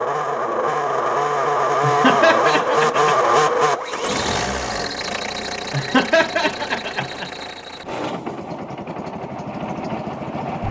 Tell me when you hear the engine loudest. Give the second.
3 s.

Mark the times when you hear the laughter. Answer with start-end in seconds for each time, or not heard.
1.8-3.1, 5.7-7.3.